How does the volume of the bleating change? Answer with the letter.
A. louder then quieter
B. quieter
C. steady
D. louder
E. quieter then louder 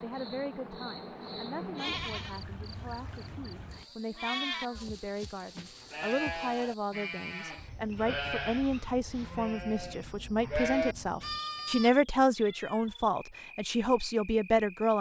D.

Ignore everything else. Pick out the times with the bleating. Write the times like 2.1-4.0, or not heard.
1.8-11.9.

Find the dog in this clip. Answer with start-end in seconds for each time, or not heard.
not heard.